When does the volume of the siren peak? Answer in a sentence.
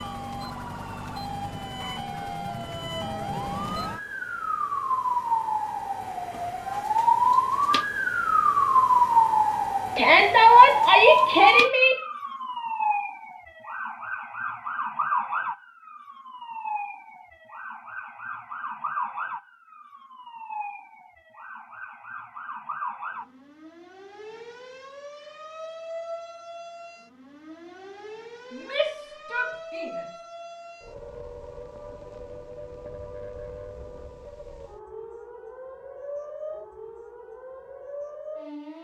The loudest moment of the siren is at 9 seconds.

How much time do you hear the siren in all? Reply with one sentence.
The siren can be heard for 39 seconds in total.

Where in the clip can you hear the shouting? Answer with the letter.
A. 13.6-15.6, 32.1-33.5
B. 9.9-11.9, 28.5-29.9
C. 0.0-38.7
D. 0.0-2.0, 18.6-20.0
B.